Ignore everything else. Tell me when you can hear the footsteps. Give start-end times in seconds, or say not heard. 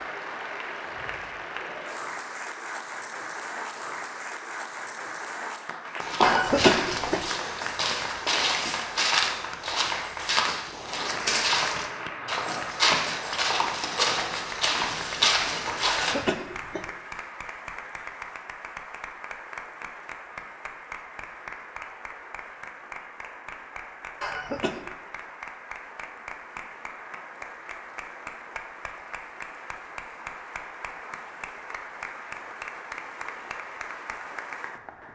6.0-16.1.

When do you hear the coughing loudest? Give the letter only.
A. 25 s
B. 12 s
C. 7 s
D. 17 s
C.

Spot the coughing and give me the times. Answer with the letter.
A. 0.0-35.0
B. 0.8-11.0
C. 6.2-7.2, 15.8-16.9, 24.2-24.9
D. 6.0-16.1
C.